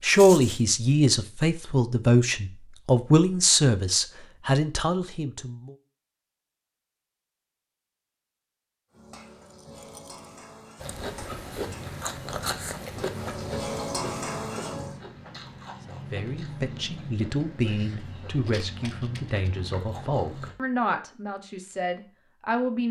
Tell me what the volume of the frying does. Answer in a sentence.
The loudness of the frying goes up.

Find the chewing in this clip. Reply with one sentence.
The chewing can be heard from 10.8 to 20.6 s.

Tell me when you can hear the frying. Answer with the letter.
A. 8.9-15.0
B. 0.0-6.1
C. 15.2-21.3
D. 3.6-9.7
A.